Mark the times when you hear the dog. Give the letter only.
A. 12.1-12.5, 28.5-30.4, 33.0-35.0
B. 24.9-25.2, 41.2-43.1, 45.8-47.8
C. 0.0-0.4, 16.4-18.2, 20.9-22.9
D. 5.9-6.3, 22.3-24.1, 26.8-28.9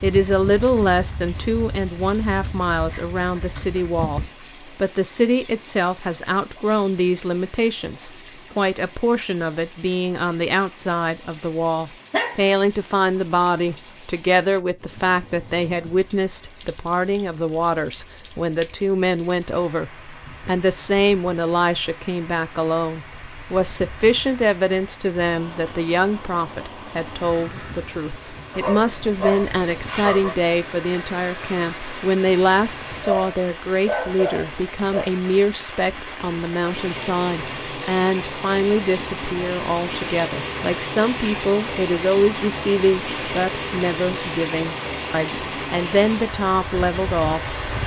A.